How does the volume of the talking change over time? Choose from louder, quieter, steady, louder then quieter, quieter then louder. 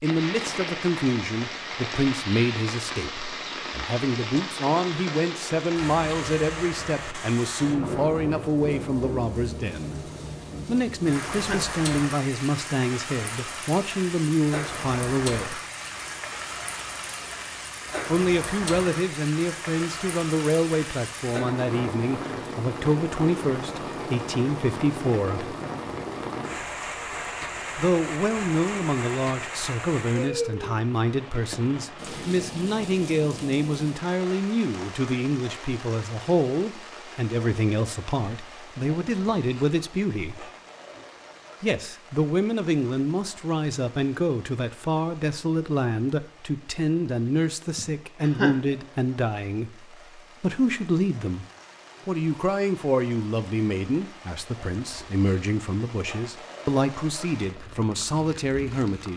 steady.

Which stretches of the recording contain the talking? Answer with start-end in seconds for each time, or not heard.
0.0-10.0, 10.7-15.6, 18.1-25.6, 27.8-40.5, 41.6-51.5, 52.0-59.1.